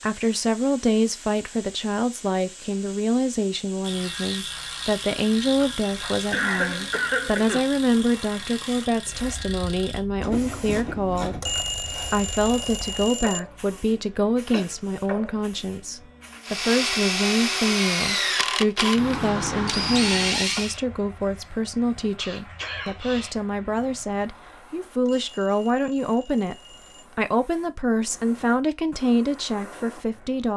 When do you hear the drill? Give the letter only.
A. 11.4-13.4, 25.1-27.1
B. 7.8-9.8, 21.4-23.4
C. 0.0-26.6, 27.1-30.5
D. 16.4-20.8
D.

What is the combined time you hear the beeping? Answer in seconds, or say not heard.
4 s.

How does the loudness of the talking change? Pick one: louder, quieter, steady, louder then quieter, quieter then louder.
steady.